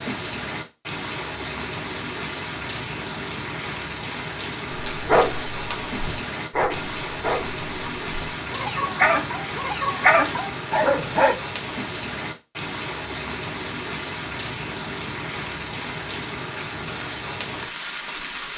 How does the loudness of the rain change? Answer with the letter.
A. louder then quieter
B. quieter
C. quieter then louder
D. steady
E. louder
D.